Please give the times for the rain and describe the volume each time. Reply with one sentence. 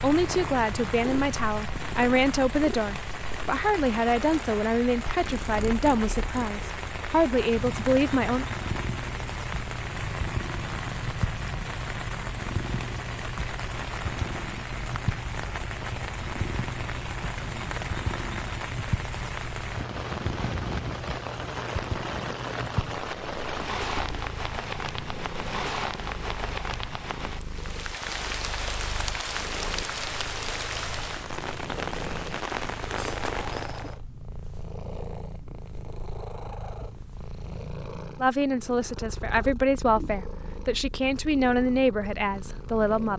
You can hear the rain from 0.0 to 34.0 s, at a steady volume.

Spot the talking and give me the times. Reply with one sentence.
The talking can be heard from 0.0 to 8.4 s and from 38.2 to 43.1 s.